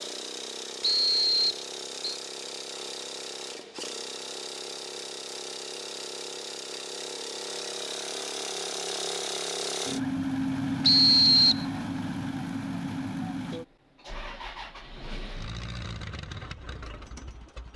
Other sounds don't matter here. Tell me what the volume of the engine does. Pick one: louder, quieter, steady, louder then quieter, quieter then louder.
louder then quieter.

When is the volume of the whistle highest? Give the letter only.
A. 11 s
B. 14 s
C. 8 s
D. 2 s
A.